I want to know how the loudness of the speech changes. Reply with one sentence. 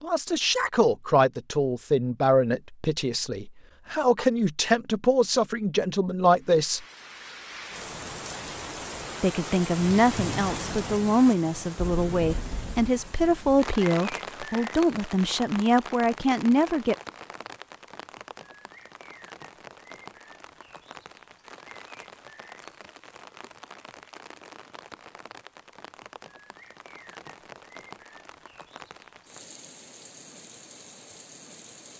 The loudness of the speech stays about the same.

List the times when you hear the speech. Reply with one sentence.
The speech can be heard from 0.0 to 6.8 s and from 9.2 to 16.9 s.